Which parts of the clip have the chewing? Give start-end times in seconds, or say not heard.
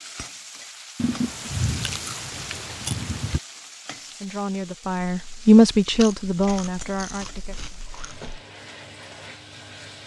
0.9-3.4, 5.8-8.4.